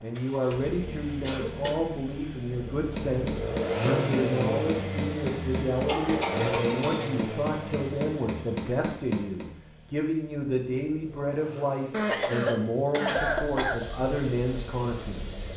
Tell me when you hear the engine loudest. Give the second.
4 s.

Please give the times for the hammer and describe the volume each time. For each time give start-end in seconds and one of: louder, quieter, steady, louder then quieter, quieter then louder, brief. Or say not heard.
3.0-9.4 steady.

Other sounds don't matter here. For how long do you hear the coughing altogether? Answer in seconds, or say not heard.
4 s.